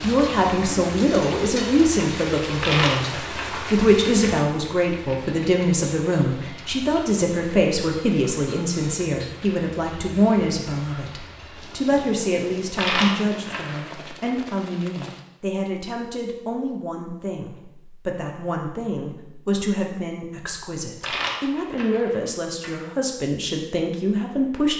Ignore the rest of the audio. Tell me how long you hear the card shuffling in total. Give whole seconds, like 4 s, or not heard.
5 s.